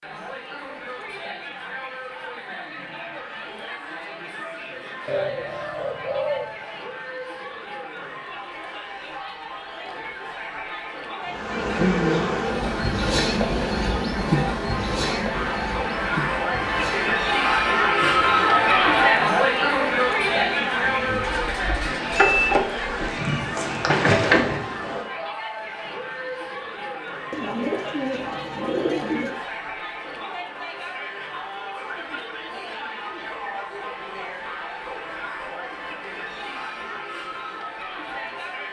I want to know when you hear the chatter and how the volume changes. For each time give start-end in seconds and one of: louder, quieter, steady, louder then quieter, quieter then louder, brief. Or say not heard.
0.0-38.6 louder then quieter.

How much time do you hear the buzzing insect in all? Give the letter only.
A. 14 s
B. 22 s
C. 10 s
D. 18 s
A.